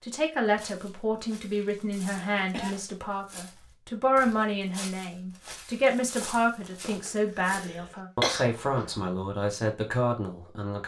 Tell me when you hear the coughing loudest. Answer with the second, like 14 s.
8 s.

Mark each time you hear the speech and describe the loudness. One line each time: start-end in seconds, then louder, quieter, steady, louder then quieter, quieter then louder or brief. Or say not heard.
0.0-10.8 steady.